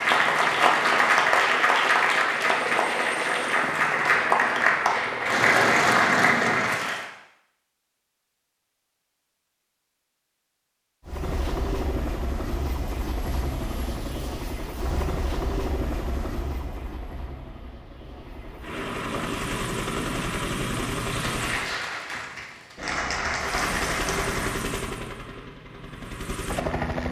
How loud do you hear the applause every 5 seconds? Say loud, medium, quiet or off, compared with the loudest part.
loud, loud, off, off, medium, off.